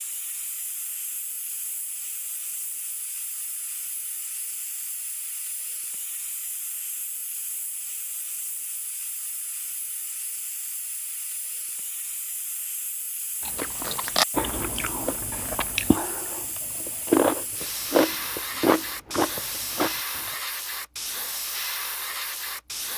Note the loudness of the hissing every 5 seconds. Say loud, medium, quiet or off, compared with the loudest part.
medium, medium, medium, loud, loud.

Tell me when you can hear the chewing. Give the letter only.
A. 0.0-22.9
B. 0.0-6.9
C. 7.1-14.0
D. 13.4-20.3
D.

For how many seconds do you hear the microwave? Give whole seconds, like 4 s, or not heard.
not heard.